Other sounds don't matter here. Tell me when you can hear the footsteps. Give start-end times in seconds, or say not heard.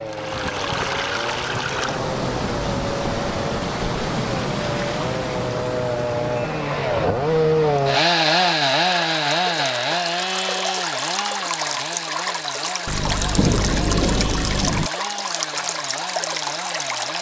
not heard.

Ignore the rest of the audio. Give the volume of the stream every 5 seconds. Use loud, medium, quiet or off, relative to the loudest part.
loud, medium, loud, loud.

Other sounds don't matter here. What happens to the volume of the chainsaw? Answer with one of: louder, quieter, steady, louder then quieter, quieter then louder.
louder then quieter.